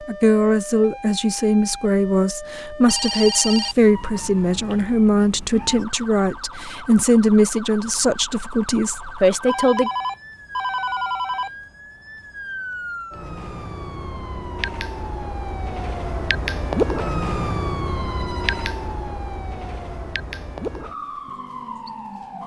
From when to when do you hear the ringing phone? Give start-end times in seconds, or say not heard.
2.9-3.9, 9.4-11.5, 17.9-18.7.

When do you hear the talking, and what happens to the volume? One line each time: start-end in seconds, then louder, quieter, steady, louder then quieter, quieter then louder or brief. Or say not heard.
0.1-9.9 steady.